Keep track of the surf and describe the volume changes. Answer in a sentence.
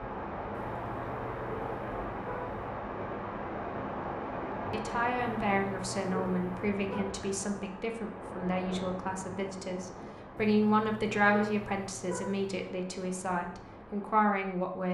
The volume of the surf goes down.